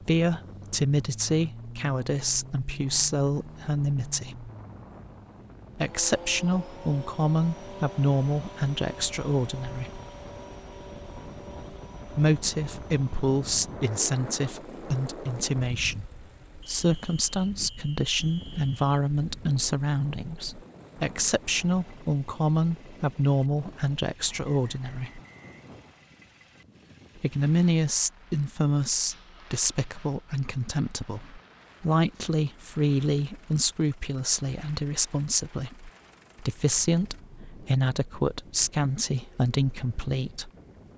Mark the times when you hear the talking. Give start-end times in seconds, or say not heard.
0.1-4.5, 5.8-10.0, 12.1-25.2, 27.1-40.5.